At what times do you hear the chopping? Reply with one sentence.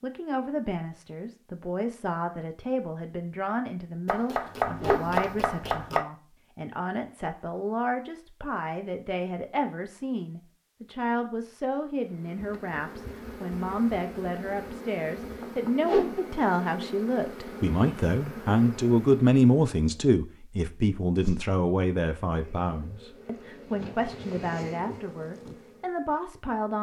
You can hear the chopping from 4.0 to 6.0 s.